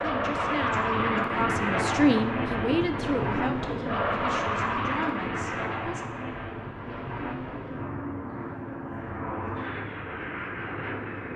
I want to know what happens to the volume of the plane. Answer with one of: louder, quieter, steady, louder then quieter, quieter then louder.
quieter.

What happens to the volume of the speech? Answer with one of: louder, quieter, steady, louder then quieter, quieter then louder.
louder then quieter.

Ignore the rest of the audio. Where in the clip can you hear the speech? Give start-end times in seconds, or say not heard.
0.0-6.0.